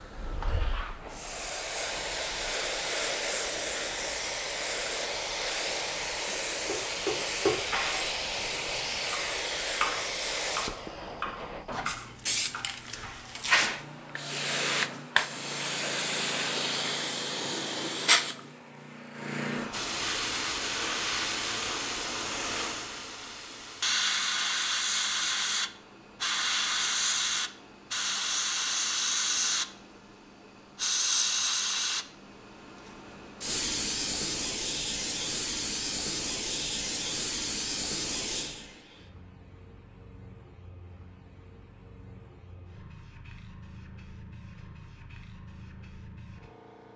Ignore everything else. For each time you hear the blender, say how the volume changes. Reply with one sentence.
You can't hear the blender here.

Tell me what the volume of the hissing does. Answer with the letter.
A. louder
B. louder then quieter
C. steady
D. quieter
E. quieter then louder
D.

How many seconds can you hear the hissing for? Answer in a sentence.
You can hear the hissing for 47 seconds altogether.